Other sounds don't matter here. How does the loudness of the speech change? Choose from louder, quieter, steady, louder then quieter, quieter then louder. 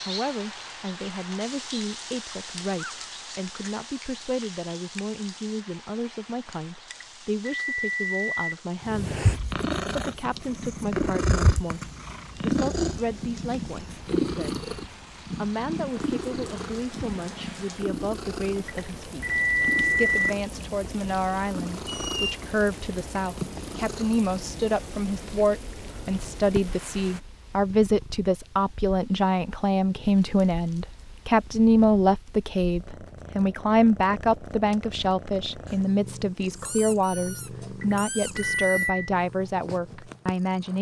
louder.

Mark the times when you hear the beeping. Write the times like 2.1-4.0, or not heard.
6.9-8.3, 18.6-20.1, 37.8-39.1.